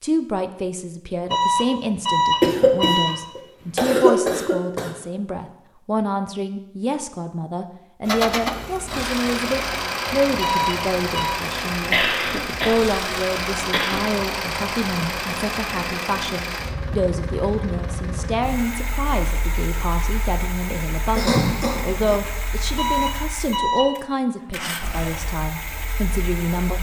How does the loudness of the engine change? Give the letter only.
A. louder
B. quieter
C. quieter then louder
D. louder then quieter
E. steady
B.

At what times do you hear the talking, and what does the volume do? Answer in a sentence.
The talking can be heard from 0.0 to 26.7 s, at a steady volume.